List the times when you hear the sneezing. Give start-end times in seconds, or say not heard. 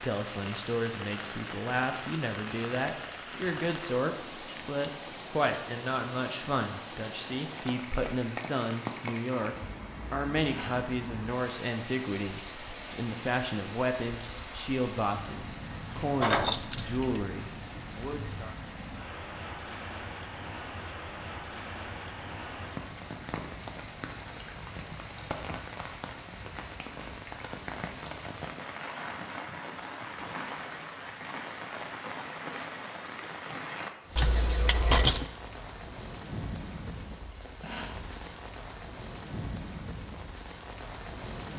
10.4-10.9, 37.6-38.0.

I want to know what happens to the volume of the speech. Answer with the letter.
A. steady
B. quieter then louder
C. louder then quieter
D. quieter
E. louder
A.